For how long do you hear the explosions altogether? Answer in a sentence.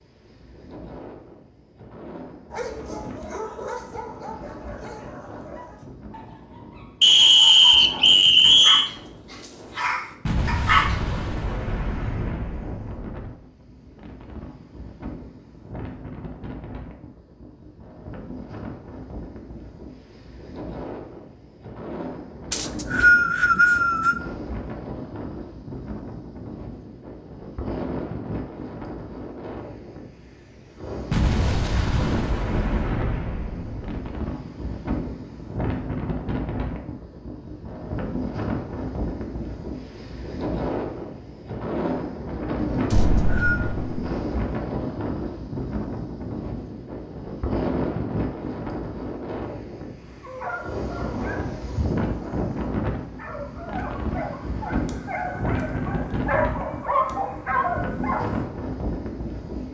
The explosions can be heard for 7 seconds in total.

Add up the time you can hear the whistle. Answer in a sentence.
The whistle can be heard for 4 seconds in total.